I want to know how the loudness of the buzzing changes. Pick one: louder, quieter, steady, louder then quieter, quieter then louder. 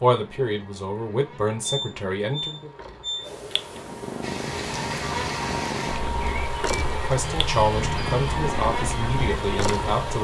louder.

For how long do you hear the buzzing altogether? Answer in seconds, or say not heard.
10 s.